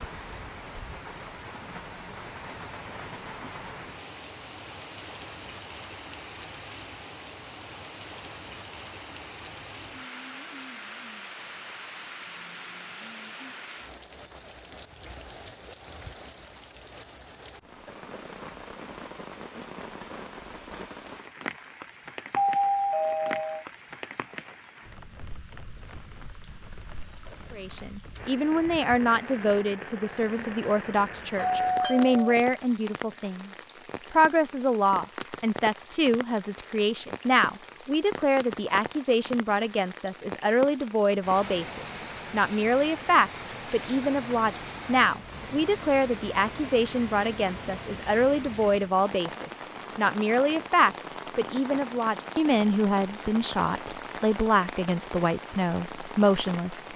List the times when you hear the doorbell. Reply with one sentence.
The doorbell can be heard from 22.4 to 23.6 s and from 31.4 to 32.4 s.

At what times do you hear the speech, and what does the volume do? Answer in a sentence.
You can hear the speech from 27.5 to 56.9 s, at a steady volume.